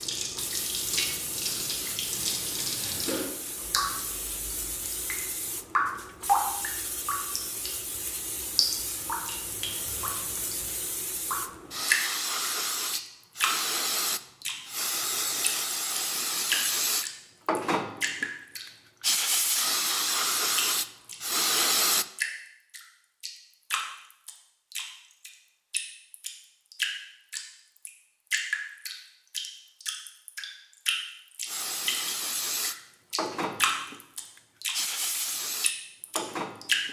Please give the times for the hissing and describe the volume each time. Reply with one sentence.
The hissing can be heard from 0.0 to 22.1 s, getting louder; and from 31.4 to 36.8 s, getting quieter then louder.